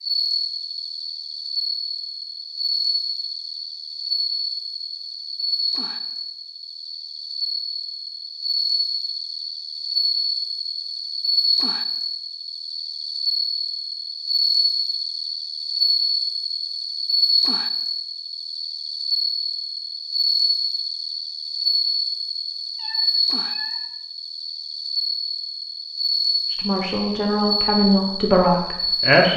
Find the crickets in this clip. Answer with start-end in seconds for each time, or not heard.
0.0-29.3.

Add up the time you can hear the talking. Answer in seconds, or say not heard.
3 s.